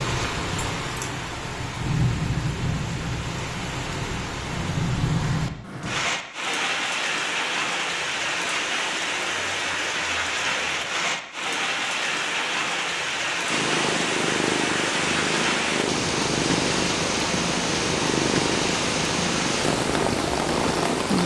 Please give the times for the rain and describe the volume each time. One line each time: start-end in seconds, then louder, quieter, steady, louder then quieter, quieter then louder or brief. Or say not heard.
0.0-21.2 steady.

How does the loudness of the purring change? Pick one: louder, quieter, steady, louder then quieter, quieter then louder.
steady.